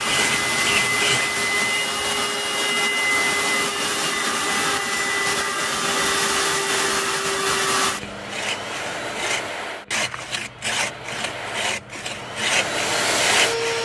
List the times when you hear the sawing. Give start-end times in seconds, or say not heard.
0.0-1.9, 7.8-13.8.